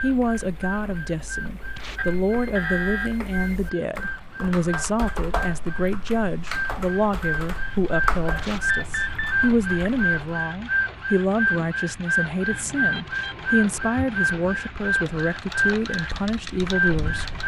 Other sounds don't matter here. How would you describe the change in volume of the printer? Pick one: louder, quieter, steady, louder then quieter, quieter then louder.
louder.